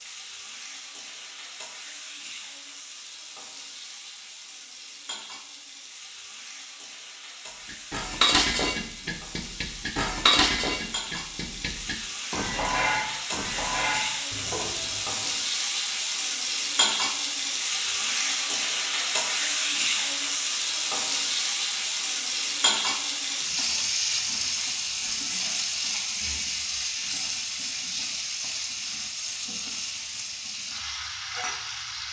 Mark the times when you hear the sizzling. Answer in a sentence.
The sizzling can be heard from 0.0 to 32.0 s.